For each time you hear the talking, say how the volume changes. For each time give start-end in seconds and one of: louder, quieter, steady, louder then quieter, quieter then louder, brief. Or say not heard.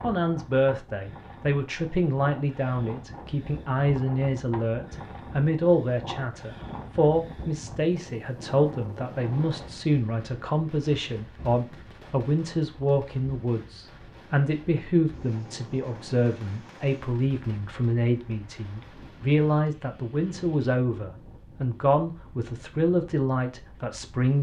0.0-24.3 steady.